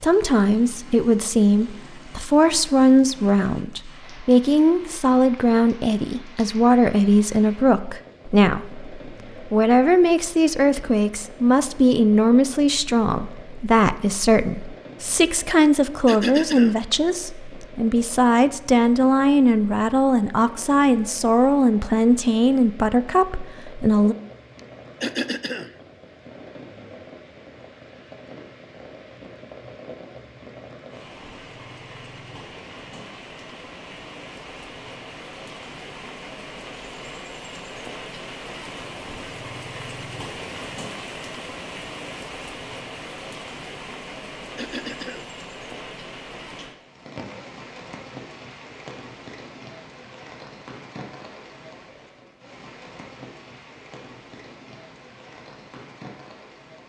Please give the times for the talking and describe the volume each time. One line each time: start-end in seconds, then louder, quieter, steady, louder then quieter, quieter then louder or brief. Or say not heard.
0.0-24.1 steady.